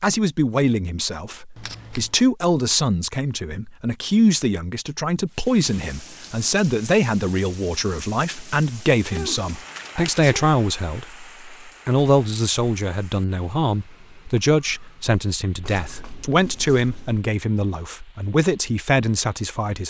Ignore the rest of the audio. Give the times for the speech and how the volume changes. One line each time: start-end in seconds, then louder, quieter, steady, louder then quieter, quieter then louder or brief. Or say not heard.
0.0-19.8 steady.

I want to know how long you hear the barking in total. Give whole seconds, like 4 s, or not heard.
not heard.